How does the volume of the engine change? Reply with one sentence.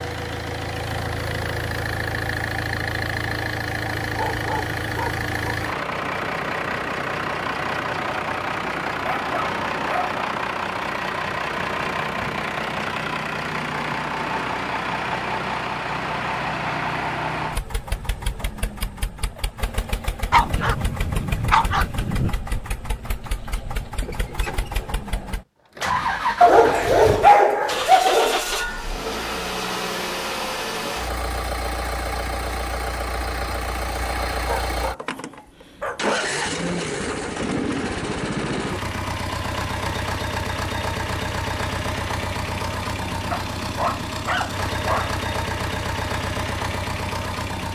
The loudness of the engine stays about the same.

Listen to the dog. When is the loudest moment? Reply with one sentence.
The volume of the dog peaks at 27 seconds.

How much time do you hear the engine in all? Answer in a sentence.
You can hear the engine for 48 seconds altogether.